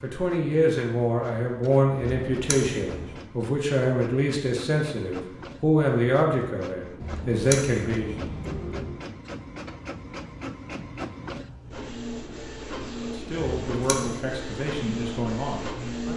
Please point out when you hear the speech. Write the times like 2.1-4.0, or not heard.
0.0-8.2, 13.0-16.1.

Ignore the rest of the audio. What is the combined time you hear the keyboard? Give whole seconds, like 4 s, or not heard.
not heard.